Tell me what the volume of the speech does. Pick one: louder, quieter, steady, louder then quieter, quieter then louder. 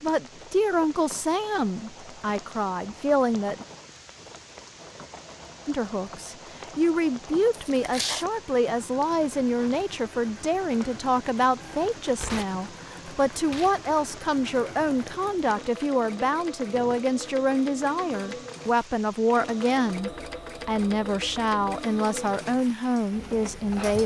steady.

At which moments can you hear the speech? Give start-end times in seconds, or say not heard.
0.0-3.6, 5.7-24.0.